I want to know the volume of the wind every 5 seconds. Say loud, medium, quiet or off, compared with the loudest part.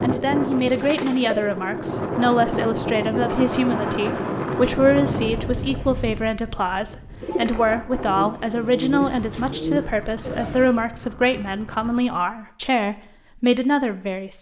loud, medium, quiet.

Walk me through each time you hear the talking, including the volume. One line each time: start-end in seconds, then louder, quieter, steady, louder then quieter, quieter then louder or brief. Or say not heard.
0.0-14.3 steady.